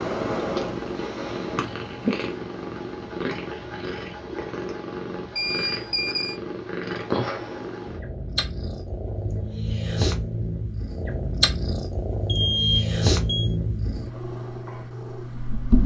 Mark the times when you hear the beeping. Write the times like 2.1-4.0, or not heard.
5.3-6.4, 12.2-13.5.